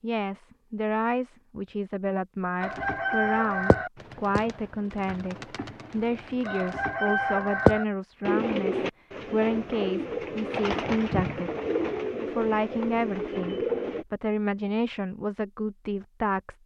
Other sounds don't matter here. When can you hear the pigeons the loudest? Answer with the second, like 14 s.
8 s.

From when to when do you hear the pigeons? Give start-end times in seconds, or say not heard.
2.6-14.1.